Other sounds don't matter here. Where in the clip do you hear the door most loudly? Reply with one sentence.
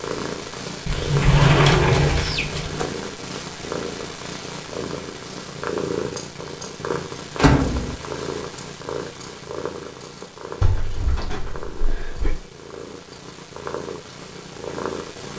The loudest moment of the door is at 2 seconds.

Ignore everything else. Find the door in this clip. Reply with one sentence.
The door can be heard from 0.8 to 2.9 s, from 7.3 to 8.0 s and from 10.6 to 12.4 s.